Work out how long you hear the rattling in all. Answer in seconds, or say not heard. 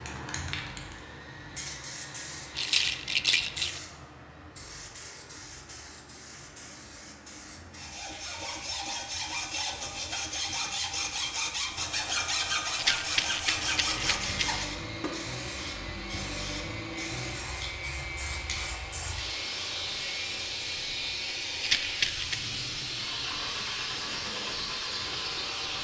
4 s.